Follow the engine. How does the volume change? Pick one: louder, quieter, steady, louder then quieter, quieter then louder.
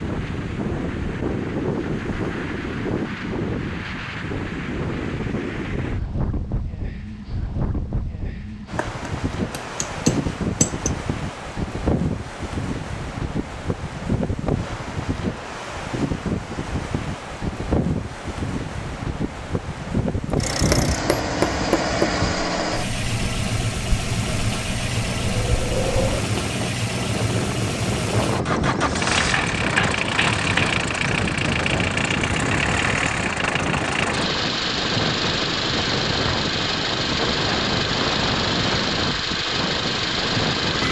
steady.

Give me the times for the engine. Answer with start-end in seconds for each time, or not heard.
20.4-40.8.